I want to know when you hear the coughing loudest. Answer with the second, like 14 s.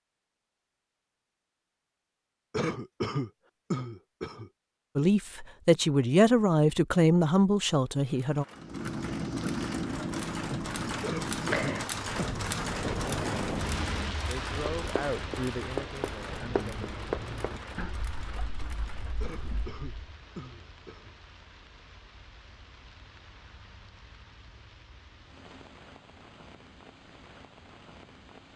3 s.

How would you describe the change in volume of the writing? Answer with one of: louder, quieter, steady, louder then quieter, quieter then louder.
quieter.